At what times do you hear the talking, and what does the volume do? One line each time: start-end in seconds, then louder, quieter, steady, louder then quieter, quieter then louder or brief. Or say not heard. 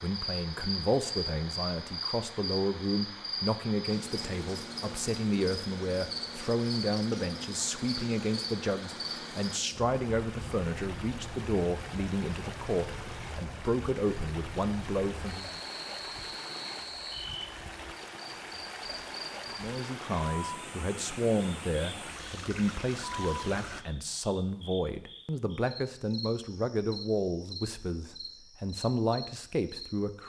0.0-15.6 steady
19.5-30.2 steady.